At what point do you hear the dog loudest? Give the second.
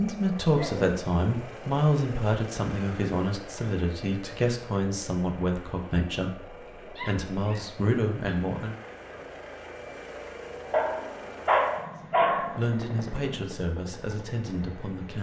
12 s.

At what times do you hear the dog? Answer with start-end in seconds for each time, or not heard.
0.5-0.9, 7.0-8.4, 10.7-12.7.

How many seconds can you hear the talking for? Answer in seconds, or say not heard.
11 s.